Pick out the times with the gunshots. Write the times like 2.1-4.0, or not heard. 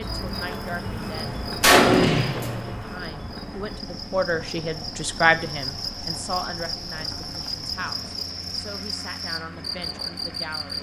1.1-2.8.